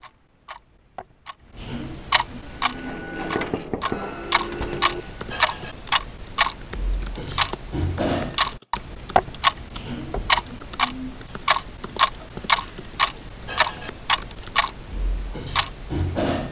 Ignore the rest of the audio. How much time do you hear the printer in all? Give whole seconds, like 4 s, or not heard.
3 s.